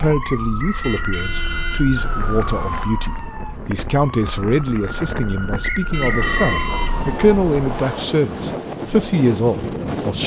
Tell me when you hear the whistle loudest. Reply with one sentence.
The volume of the whistle peaks at 6 seconds.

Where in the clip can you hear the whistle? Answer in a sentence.
The whistle can be heard from 0.2 to 1.2 s and from 5.6 to 6.7 s.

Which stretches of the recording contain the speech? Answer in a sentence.
You can hear the speech from 0.0 to 10.2 s.